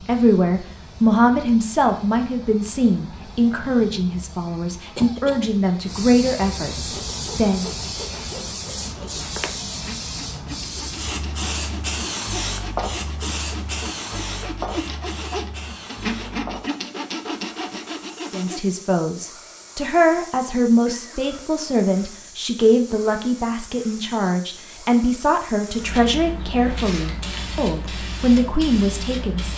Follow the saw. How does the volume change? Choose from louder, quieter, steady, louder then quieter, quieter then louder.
louder.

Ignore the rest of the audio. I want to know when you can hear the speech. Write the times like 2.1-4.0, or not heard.
0.1-7.7, 18.3-29.5.